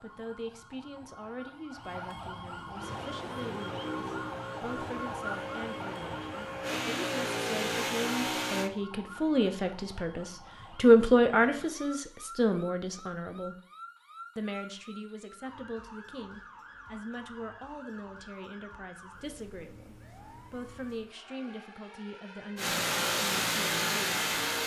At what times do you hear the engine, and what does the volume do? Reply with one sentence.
The engine can be heard from 2.8 to 8.7 s, getting louder; and briefly from 22.6 to 24.6 s.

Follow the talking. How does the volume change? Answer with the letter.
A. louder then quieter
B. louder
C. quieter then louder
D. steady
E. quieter
A.